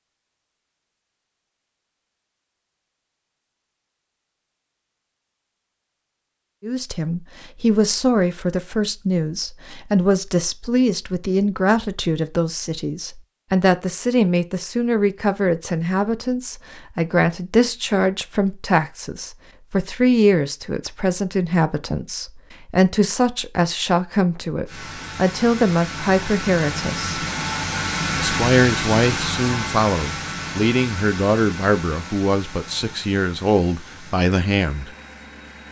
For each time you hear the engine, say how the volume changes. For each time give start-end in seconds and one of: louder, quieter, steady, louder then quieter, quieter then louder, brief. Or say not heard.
24.6-35.6 louder then quieter.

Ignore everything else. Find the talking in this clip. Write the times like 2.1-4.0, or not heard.
6.6-27.2, 28.1-34.9.